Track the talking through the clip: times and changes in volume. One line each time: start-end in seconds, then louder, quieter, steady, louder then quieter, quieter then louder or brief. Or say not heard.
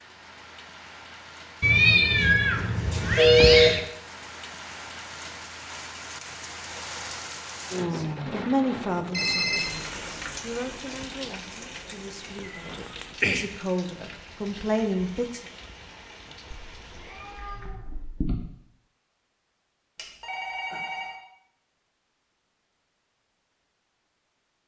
7.9-15.4 quieter then louder.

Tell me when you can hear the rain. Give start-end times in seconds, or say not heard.
0.0-17.8.